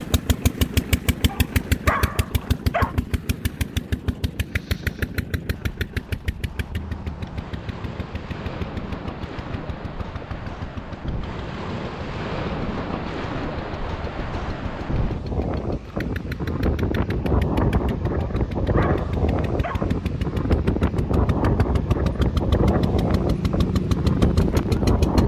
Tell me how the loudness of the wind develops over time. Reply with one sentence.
The volume of the wind goes up.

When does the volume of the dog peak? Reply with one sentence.
The volume of the dog peaks at 2 seconds.